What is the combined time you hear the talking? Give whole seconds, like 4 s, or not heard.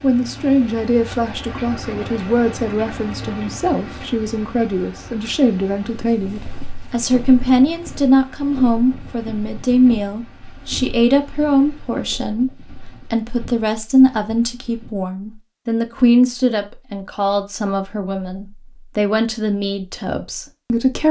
21 s.